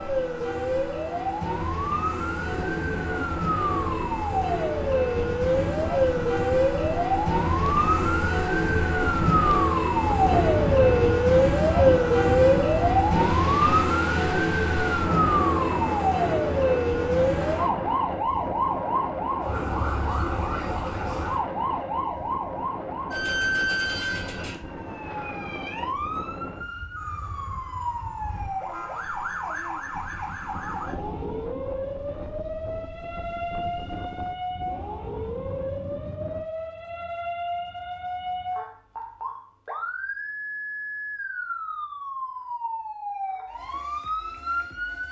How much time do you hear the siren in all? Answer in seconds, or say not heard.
45 s.